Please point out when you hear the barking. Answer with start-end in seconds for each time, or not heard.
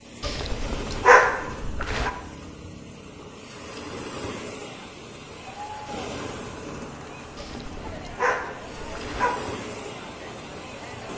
0.2-2.1, 7.3-9.3.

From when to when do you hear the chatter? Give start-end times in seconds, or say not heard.
5.2-11.1.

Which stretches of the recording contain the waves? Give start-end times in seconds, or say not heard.
0.0-11.1.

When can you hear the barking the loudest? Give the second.
1 s.